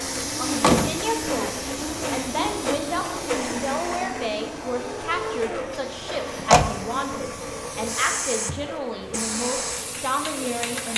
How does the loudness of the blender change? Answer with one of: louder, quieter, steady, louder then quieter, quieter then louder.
quieter.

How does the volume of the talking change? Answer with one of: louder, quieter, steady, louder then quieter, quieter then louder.
steady.